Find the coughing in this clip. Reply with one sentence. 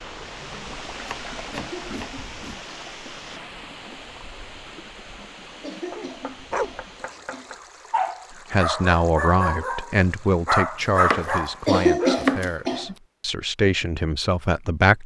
You can hear the coughing from 1.5 to 2.2 s, from 5.6 to 7.5 s and from 11.7 to 12.9 s.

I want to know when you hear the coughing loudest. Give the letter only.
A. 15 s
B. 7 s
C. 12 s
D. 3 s
C.